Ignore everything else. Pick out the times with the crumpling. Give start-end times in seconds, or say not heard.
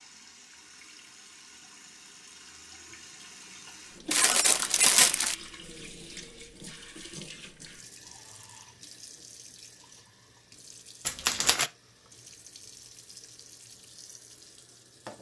4.1-5.3, 11.1-11.7.